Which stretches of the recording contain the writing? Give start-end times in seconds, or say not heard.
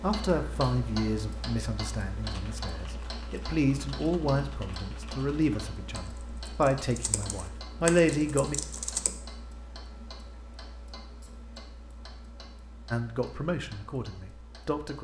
not heard.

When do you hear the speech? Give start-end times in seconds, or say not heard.
0.0-8.6, 12.9-14.9.